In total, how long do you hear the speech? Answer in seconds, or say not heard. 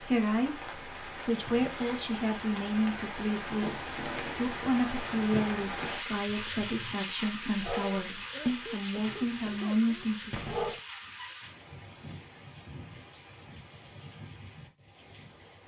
10 s.